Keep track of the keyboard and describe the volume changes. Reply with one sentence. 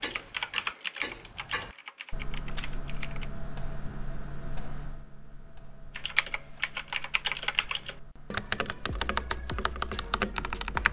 The loudness of the keyboard goes down, then up.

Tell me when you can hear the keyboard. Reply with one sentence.
You can hear the keyboard from 0.0 to 3.3 s and from 5.9 to 10.8 s.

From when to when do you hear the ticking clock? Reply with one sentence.
The ticking clock can be heard from 0.0 to 10.8 s.